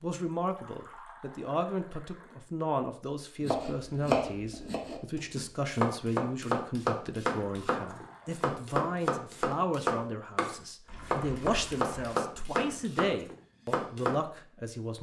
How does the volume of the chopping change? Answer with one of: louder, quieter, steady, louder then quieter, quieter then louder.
steady.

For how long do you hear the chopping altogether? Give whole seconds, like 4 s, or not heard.
11 s.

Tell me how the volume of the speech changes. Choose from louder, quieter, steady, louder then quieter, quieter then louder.
steady.